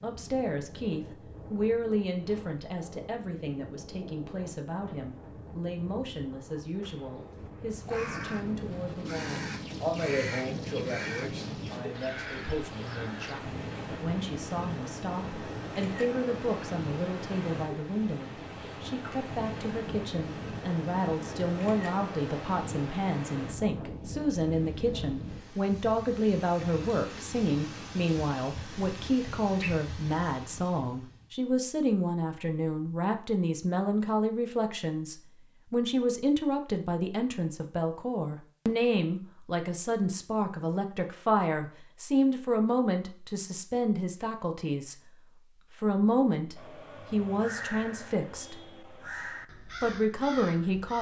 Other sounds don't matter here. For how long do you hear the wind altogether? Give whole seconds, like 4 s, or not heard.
31 s.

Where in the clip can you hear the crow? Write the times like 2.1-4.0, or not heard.
6.8-13.4, 46.5-50.9.